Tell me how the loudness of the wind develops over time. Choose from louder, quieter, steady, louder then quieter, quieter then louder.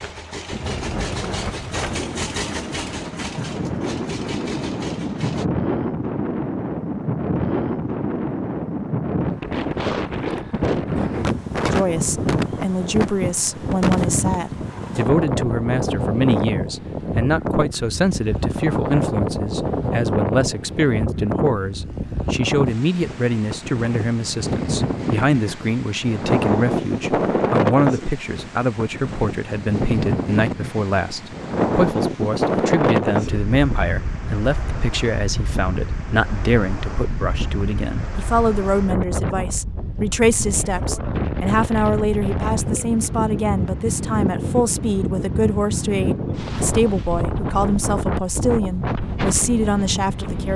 steady.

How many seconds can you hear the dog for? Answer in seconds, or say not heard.
not heard.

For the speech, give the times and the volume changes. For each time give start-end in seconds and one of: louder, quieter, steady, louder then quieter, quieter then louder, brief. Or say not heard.
11.7-50.5 steady.